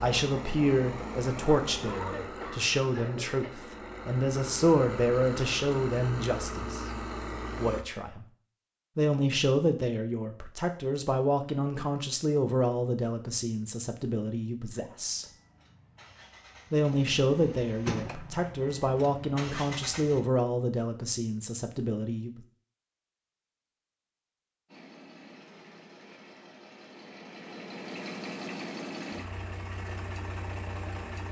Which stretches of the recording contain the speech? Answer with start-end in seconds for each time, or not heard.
0.0-6.8, 7.5-8.2, 8.9-15.2, 16.7-22.4.